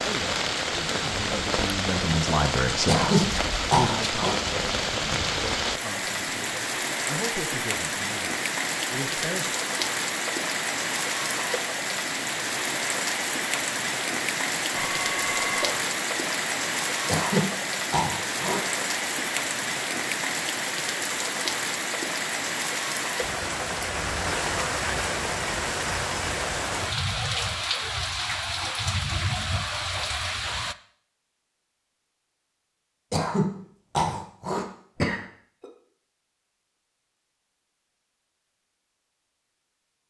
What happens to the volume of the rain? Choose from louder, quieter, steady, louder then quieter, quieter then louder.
steady.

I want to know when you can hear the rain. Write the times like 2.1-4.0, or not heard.
0.0-30.8.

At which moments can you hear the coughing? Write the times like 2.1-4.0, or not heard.
2.9-4.3, 17.1-18.6, 33.1-35.6.